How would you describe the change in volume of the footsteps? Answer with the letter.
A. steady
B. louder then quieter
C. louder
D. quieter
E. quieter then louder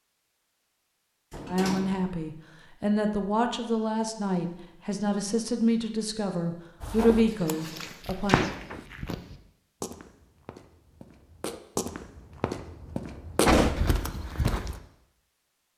E.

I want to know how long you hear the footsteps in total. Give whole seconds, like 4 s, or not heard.
8 s.